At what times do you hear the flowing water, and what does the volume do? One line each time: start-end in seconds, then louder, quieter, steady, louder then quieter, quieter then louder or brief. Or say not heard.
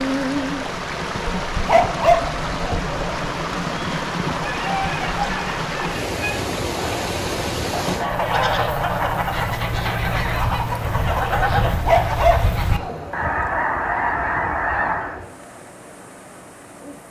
0.0-17.0 quieter.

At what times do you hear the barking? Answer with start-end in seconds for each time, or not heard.
1.6-3.0, 11.8-13.3.